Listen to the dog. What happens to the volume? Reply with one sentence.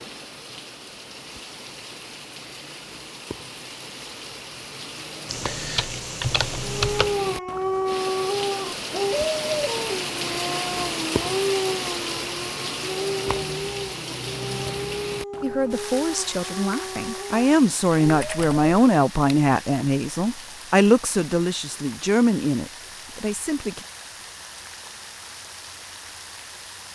The loudness of the dog goes down.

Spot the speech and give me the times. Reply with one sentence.
The speech can be heard from 15.4 to 23.9 s.